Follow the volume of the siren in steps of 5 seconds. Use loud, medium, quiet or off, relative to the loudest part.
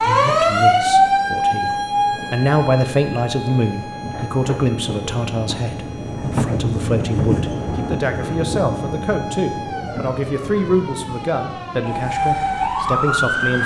loud, quiet, loud.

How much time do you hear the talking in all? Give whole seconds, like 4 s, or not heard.
13 s.